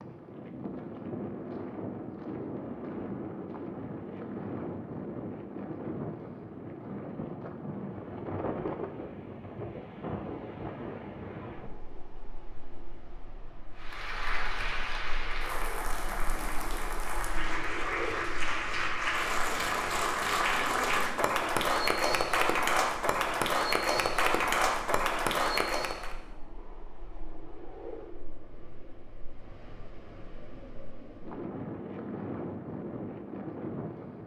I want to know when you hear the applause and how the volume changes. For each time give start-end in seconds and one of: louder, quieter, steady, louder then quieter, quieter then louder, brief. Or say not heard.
13.8-26.1 louder.